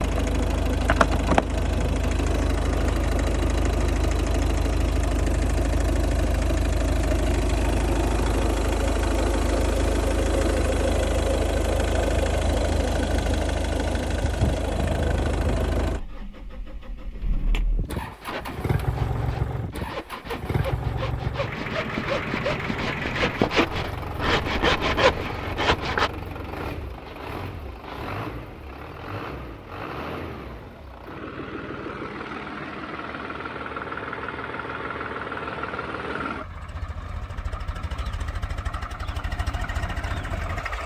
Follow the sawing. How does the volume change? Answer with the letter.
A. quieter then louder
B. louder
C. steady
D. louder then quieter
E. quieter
B.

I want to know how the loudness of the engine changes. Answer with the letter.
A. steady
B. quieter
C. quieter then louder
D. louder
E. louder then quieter
B.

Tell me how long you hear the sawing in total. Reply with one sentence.
You can hear the sawing for 8 seconds altogether.